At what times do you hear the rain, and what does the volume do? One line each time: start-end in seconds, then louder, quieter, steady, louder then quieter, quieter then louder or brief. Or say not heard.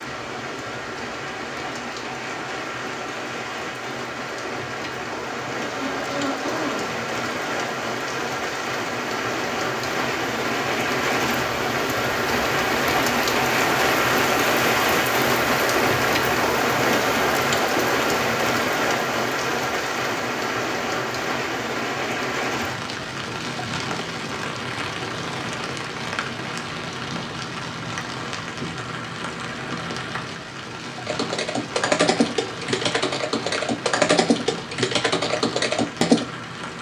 0.0-36.7 louder then quieter.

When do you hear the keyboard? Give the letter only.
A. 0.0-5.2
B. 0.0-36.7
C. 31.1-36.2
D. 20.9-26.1
C.